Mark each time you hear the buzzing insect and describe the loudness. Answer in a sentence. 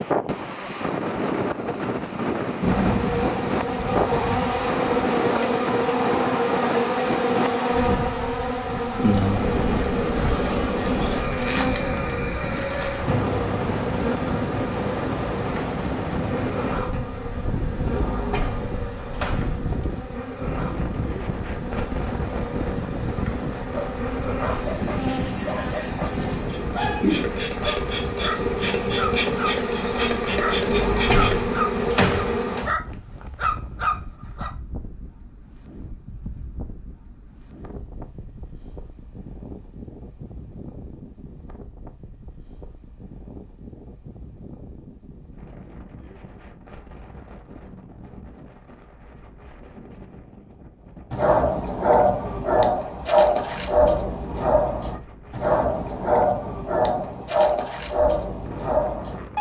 The buzzing insect can be heard from 2.6 to 32.6 s, getting quieter then louder.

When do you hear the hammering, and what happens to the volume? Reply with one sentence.
You can't hear the hammering here.